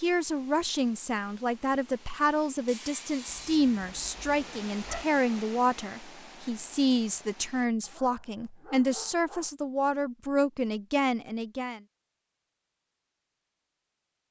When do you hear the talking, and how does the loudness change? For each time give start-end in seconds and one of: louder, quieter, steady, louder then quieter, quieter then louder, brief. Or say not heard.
0.0-11.8 steady.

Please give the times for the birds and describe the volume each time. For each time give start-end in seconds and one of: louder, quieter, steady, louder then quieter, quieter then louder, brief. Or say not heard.
not heard.